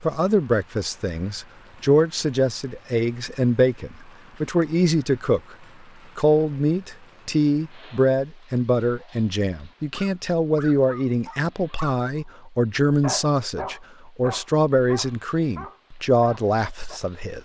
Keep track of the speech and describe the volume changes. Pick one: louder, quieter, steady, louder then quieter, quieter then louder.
steady.